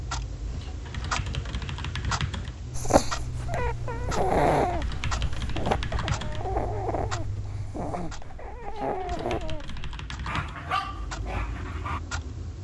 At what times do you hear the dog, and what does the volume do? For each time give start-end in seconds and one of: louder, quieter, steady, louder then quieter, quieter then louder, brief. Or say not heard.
2.8-12.0 quieter.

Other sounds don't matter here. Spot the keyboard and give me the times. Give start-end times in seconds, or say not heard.
0.5-2.6, 4.6-6.5, 8.6-10.6.